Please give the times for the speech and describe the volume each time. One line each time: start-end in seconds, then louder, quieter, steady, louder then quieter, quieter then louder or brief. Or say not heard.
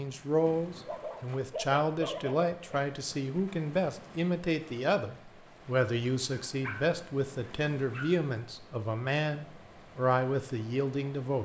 0.0-11.4 steady.